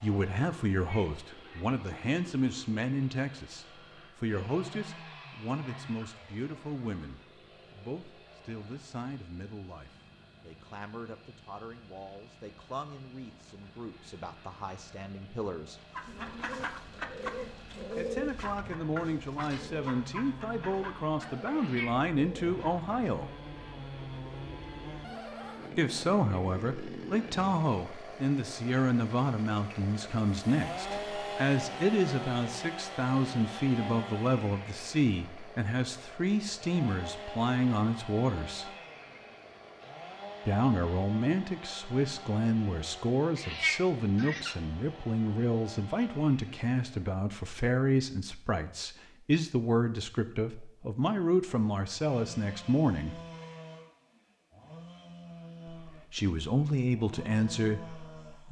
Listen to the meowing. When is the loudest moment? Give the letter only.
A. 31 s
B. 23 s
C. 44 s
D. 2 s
C.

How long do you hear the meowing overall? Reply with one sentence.
The meowing can be heard for 3 seconds in total.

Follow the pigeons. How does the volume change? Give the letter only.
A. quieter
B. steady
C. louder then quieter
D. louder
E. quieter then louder
A.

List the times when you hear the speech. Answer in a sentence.
The speech can be heard from 0.0 to 15.8 s, from 17.9 to 23.2 s, from 25.8 to 38.7 s, from 40.5 to 53.2 s and from 55.7 to 58.4 s.